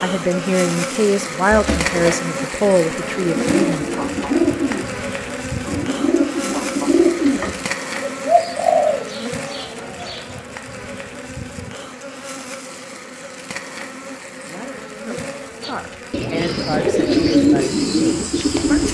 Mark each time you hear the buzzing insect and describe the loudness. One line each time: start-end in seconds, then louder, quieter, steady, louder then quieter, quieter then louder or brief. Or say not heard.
0.0-18.8 quieter.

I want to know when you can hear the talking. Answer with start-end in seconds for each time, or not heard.
0.0-3.9, 14.4-18.8.